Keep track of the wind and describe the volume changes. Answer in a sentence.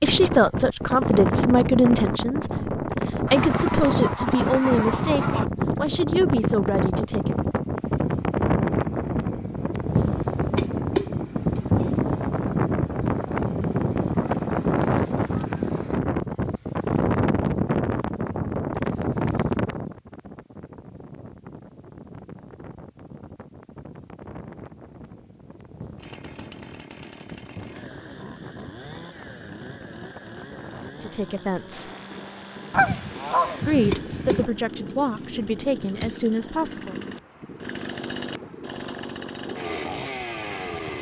The loudness of the wind goes down.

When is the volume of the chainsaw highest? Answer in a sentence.
The loudest moment of the chainsaw is at 40 seconds.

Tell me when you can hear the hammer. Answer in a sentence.
You can hear the hammer from 10.3 to 12.1 s and from 33.7 to 36.1 s.